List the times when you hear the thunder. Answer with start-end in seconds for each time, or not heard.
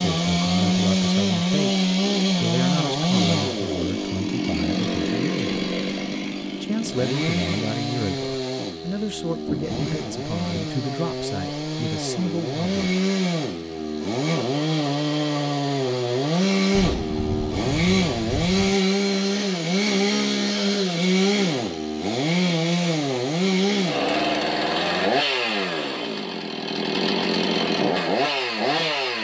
9.4-10.8, 16.7-18.8.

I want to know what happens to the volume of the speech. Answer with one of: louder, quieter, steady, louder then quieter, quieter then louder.
steady.